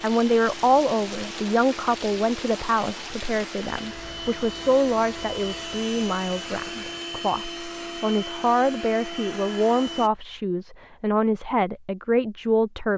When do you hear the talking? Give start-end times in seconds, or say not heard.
0.0-12.9.